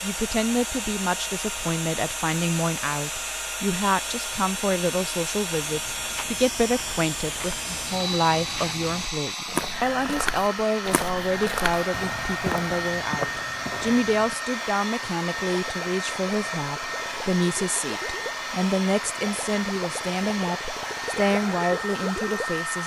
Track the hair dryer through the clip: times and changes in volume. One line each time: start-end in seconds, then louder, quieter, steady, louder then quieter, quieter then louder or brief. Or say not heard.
0.0-22.8 steady.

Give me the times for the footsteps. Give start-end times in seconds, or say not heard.
5.6-14.3.